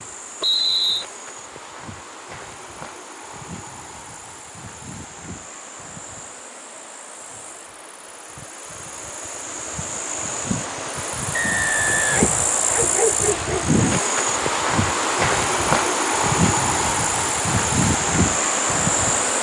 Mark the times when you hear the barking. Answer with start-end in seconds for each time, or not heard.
12.1-13.8.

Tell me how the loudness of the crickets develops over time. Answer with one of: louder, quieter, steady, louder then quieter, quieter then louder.
louder.